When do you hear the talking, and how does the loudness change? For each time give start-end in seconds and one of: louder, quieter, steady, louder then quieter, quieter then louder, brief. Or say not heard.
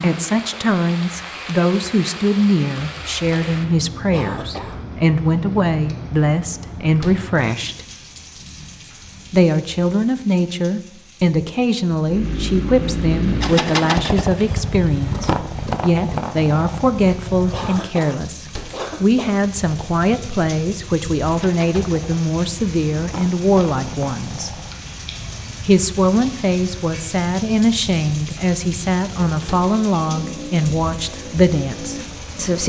0.0-7.8 steady
9.3-24.5 steady
25.6-32.6 steady.